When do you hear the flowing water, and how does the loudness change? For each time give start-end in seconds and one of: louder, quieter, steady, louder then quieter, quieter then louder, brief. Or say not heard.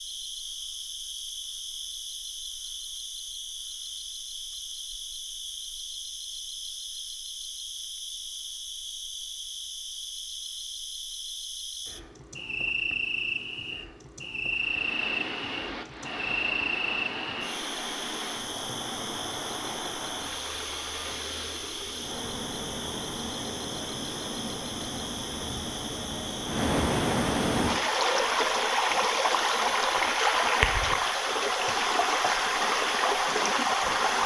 14.5-34.2 louder.